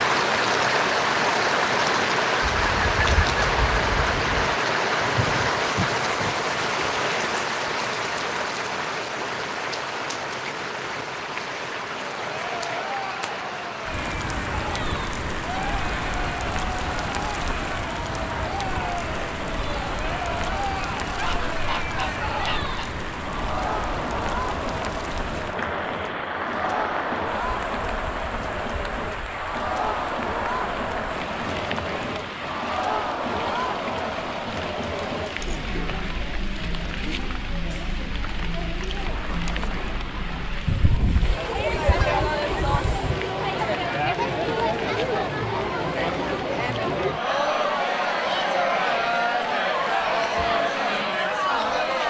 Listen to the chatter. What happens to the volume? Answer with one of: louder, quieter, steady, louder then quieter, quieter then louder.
louder.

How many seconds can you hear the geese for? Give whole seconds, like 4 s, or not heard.
6 s.